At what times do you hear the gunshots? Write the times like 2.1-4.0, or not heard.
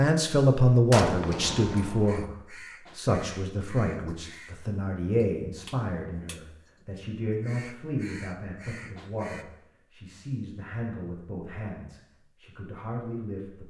0.9-2.2.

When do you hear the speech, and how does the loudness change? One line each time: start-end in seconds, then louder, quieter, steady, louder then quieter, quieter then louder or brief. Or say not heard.
0.0-2.4 brief
3.0-13.6 quieter.